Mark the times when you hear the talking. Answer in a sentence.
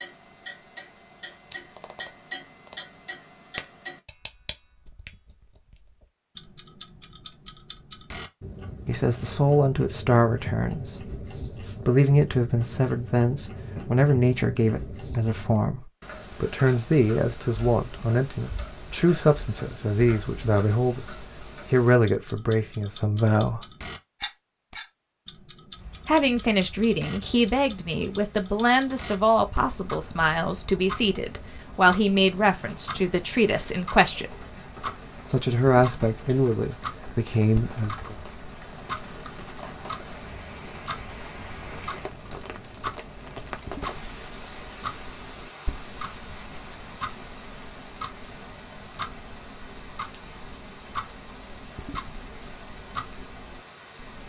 The talking can be heard from 8.8 to 23.6 s, from 26.1 to 34.4 s and from 35.3 to 38.1 s.